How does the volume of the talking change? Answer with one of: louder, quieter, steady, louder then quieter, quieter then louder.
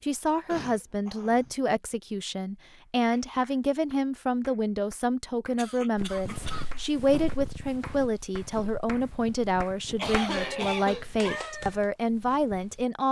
steady.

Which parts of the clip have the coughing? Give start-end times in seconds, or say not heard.
0.5-1.6, 5.5-6.8, 9.9-11.4.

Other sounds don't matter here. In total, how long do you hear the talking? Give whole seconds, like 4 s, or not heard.
13 s.